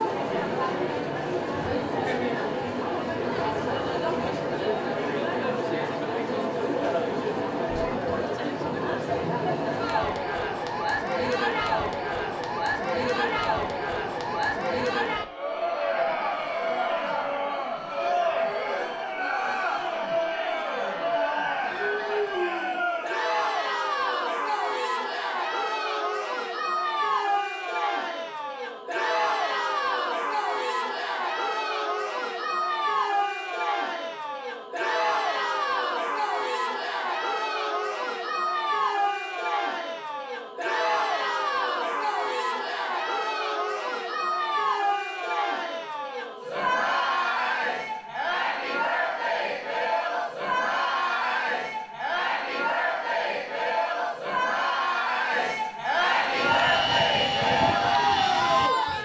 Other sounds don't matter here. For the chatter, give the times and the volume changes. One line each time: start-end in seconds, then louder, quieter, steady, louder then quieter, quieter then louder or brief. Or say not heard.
0.0-59.0 steady.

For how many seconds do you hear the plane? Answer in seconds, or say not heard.
3 s.